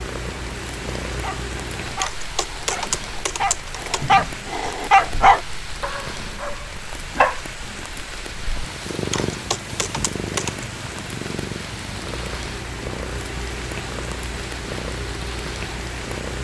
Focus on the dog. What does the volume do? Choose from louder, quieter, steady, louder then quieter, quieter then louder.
louder then quieter.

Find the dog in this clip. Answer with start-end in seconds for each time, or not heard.
1.1-7.3.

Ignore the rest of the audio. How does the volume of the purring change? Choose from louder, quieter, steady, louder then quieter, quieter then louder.
quieter then louder.